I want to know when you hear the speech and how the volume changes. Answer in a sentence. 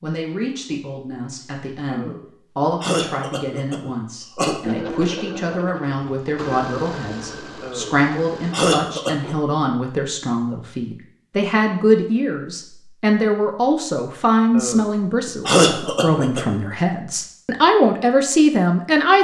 The speech can be heard from 0.0 to 19.1 s, getting louder.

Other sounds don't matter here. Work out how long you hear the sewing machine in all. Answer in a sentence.
You can hear the sewing machine for 4 seconds altogether.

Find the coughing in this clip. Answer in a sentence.
The coughing can be heard from 1.9 to 4.6 s, from 7.6 to 9.3 s and from 14.5 to 16.6 s.